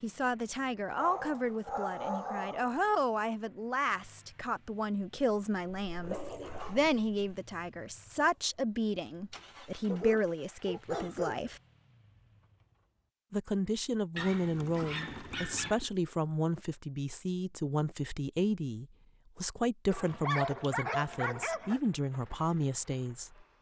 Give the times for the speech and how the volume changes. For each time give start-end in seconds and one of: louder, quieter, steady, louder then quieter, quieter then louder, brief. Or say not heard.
0.0-11.6 steady
13.3-23.4 steady.